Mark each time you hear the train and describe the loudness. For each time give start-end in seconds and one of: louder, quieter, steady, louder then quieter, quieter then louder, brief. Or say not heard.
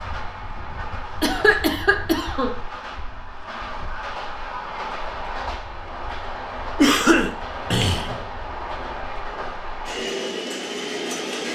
0.0-11.5 louder.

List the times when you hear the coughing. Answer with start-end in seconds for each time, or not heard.
1.2-2.5, 6.8-8.2.